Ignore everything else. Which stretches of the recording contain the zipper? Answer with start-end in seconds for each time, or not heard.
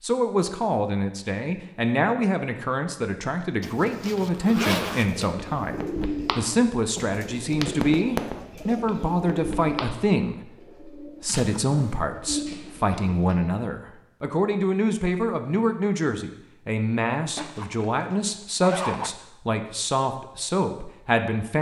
3.6-5.3, 11.2-12.0, 17.4-19.1.